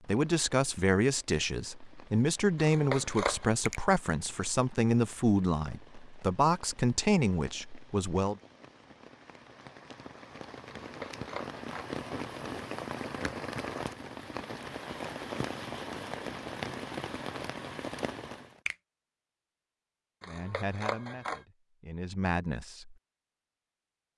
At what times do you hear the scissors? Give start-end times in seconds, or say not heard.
2.6-3.5, 10.7-11.9, 20.2-21.4.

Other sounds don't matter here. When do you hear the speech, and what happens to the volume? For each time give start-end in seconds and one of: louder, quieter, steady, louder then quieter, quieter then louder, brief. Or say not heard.
0.1-8.3 steady
20.2-22.9 brief.